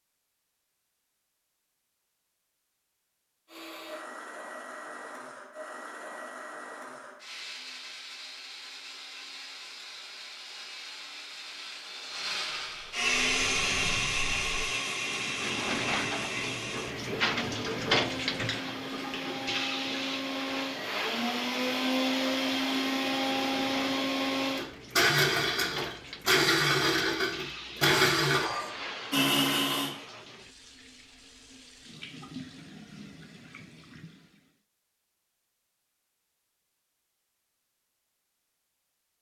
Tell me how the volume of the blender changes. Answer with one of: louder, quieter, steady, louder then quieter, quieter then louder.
louder.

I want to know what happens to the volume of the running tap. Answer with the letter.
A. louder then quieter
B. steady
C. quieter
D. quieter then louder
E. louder
C.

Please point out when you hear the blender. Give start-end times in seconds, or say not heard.
3.5-29.9.